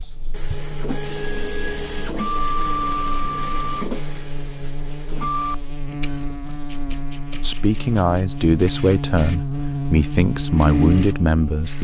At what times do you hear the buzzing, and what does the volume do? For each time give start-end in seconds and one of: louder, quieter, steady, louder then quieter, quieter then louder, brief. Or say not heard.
0.0-11.7 louder.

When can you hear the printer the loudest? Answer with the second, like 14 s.
3 s.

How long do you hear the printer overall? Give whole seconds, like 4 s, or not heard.
12 s.